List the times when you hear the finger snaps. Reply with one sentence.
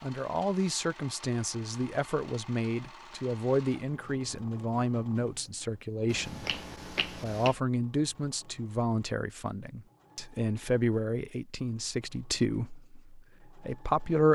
You can hear the finger snaps from 6.0 to 7.5 s.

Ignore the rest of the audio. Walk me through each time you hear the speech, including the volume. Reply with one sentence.
You can hear the speech from 0.0 to 14.3 s, at a steady volume.